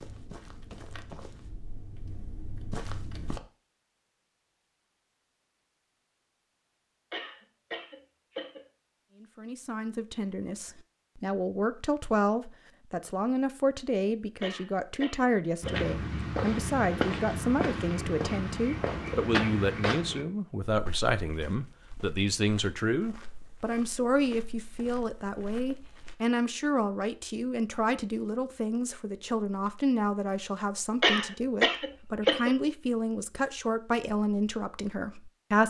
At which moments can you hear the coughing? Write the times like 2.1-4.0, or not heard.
7.1-8.7, 14.4-15.9, 31.0-32.5.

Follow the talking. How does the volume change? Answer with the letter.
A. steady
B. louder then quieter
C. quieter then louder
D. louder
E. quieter
A.